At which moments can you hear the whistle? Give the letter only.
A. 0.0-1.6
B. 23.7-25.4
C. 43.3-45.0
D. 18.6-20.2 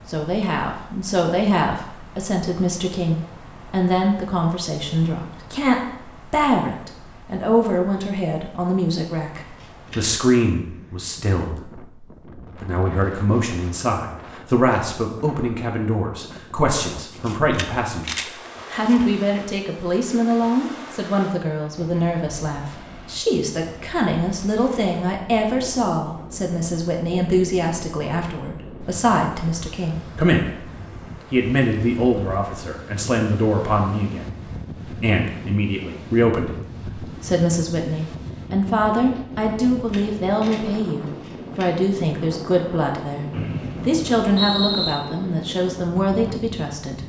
C.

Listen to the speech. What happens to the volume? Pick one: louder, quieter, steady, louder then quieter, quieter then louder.
steady.